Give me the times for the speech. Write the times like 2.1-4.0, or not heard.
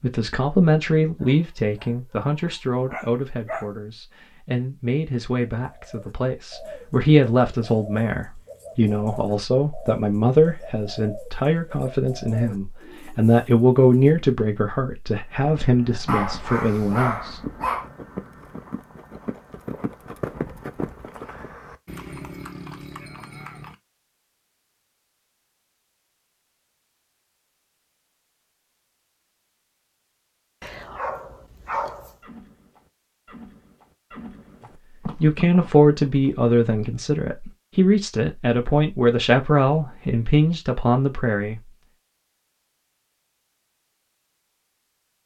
0.0-17.4, 35.2-41.6.